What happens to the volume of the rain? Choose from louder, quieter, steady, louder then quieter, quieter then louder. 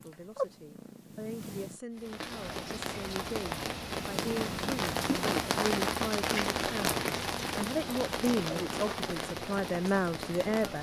louder then quieter.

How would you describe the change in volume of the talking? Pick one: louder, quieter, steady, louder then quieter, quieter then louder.
louder.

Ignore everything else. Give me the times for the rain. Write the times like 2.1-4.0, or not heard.
1.9-10.7.